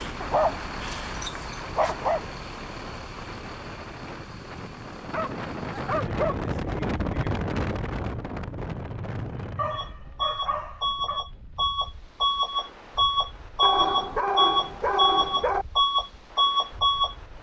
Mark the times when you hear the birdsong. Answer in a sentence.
The birdsong can't be heard in this clip.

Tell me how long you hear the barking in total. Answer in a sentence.
You can hear the barking for 7 seconds altogether.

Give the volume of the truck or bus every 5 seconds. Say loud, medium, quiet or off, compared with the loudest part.
quiet, quiet, loud, loud.